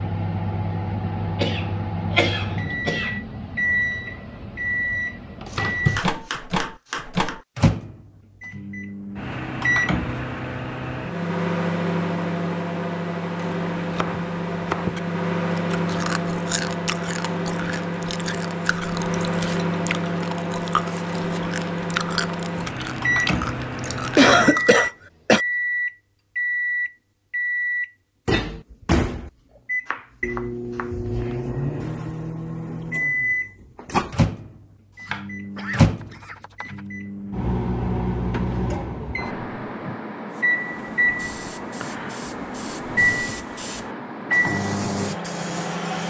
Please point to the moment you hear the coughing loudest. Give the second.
24 s.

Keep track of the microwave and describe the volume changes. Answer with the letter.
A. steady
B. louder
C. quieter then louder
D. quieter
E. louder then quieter
A.